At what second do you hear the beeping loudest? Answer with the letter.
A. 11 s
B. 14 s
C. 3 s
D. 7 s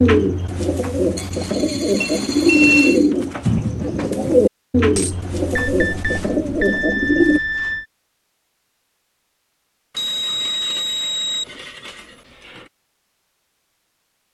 C.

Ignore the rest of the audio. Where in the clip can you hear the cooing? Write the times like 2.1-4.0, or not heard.
0.0-7.4.